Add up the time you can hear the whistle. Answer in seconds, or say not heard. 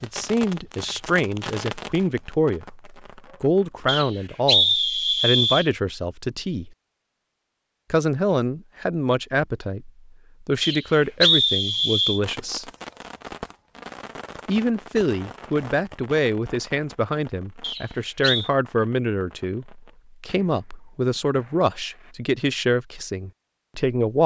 4 s.